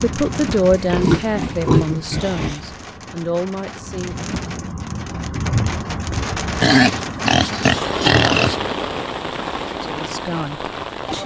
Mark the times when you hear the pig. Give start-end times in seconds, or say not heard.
0.7-2.6, 6.6-8.6.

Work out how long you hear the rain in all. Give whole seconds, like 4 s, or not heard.
11 s.